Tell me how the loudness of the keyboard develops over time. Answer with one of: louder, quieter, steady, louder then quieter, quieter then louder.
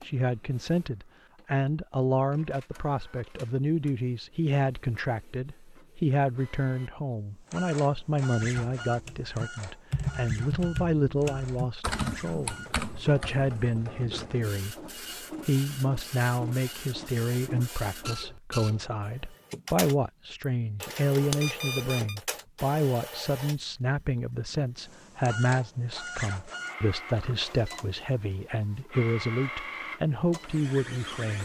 quieter.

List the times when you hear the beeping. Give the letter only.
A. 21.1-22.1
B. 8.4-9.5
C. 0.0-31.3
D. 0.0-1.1
A.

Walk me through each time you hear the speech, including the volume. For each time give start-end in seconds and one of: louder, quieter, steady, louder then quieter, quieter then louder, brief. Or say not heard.
0.0-31.3 steady.